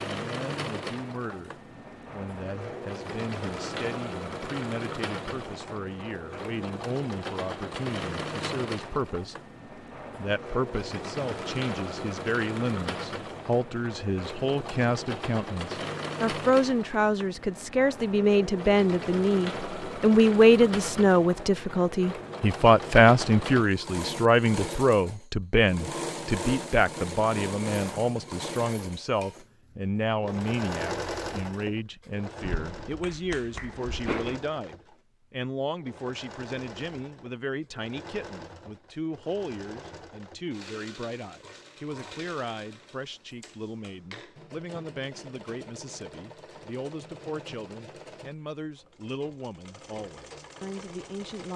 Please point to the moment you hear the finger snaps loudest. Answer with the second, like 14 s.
34 s.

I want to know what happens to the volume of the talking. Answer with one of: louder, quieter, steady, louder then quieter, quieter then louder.
louder then quieter.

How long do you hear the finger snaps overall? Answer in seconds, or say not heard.
2 s.